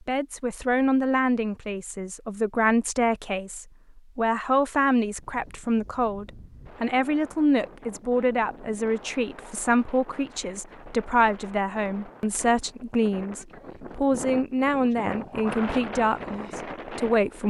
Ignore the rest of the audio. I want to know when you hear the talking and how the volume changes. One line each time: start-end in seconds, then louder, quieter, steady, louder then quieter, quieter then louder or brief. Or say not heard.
0.1-17.4 steady.